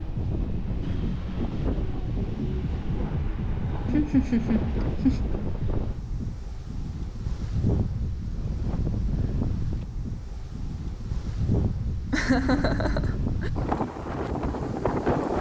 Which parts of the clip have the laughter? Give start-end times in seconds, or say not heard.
3.9-5.2, 12.1-13.5.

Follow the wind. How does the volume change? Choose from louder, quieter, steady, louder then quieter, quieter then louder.
steady.